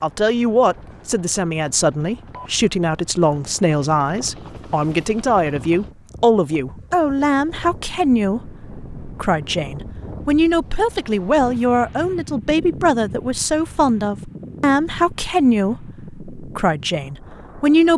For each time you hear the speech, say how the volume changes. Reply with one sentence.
You can hear the speech from 0.0 to 17.9 s, at a steady volume.